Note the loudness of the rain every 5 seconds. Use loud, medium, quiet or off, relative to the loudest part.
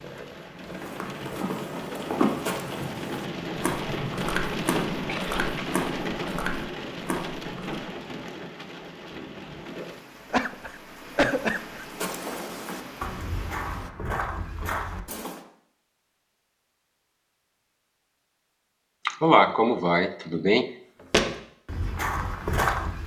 loud, loud, medium, off, off.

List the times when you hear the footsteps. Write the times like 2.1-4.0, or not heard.
0.6-7.8, 11.9-15.4, 21.1-23.0.